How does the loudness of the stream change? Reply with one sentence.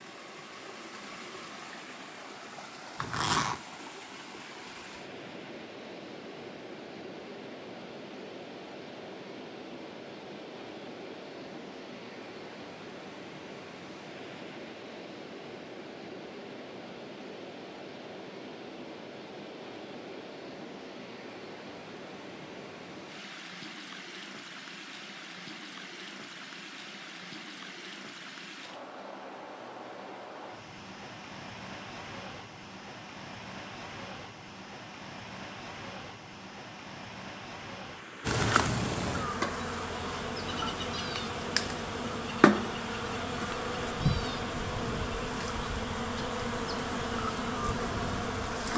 The loudness of the stream stays about the same.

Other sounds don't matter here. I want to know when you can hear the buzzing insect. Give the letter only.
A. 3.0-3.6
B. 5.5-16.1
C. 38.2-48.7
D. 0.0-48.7
C.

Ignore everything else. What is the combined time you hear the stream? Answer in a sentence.
The stream can be heard for 49 seconds in total.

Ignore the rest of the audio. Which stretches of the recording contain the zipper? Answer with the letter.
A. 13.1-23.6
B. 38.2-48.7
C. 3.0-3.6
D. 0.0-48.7
C.